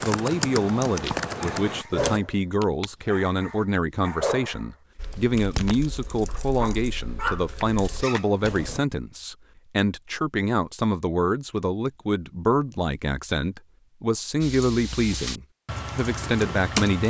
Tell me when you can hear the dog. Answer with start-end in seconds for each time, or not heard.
1.0-8.2.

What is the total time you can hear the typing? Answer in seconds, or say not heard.
9 s.